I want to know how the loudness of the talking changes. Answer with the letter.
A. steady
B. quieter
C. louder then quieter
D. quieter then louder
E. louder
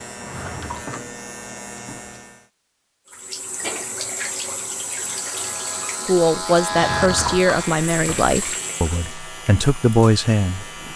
D.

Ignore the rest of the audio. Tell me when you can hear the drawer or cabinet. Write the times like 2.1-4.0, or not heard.
0.1-1.0, 6.7-8.3.